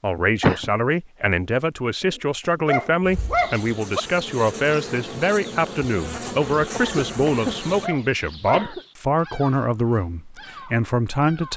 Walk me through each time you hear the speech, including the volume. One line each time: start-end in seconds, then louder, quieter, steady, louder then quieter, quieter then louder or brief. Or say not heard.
0.0-11.5 steady.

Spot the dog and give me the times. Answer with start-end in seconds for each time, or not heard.
2.5-4.0, 7.8-8.7.